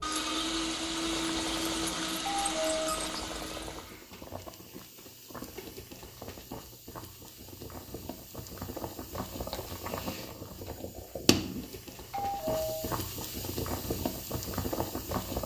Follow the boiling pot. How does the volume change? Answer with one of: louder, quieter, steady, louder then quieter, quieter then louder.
louder.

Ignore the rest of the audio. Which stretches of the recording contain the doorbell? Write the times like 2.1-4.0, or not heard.
2.2-3.0, 12.1-13.0.